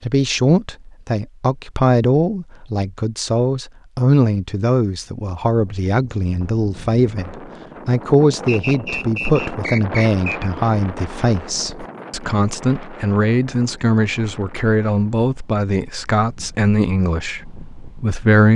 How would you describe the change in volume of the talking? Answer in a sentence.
The volume of the talking stays about the same.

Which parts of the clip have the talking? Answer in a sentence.
You can hear the talking from 0.0 to 18.5 s.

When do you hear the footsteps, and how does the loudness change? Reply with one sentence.
You can't hear the footsteps here.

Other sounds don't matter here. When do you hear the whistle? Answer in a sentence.
The whistle can be heard from 8.4 to 10.5 s.